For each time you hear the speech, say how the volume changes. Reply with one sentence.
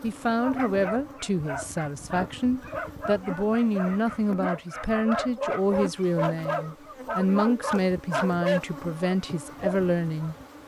The speech can be heard from 0.0 to 10.3 s, at a steady volume.